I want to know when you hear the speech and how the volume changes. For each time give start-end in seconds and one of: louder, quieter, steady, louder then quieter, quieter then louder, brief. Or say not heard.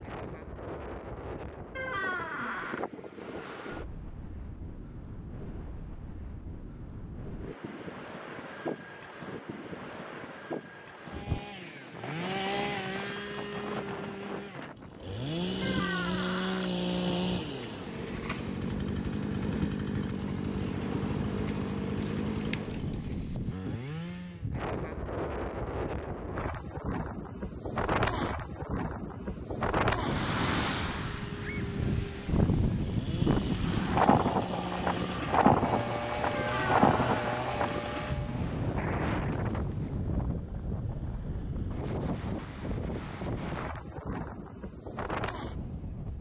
not heard.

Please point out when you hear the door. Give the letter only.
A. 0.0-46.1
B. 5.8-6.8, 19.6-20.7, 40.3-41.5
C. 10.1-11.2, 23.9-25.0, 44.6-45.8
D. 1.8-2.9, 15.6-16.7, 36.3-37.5
D.